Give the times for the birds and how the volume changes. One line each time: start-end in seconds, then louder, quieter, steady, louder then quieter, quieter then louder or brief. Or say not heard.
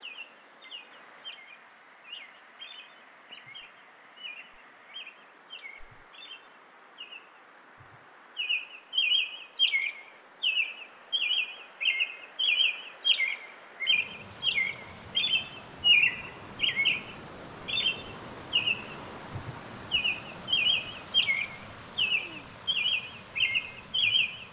0.0-24.4 louder.